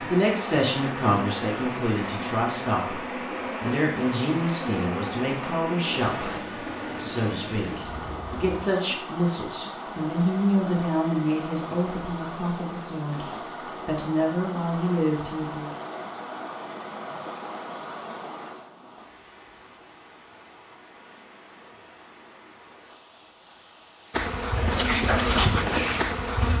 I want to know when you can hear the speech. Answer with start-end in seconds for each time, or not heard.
0.0-3.0, 3.6-13.2, 13.8-15.7.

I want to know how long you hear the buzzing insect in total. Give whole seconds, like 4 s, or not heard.
11 s.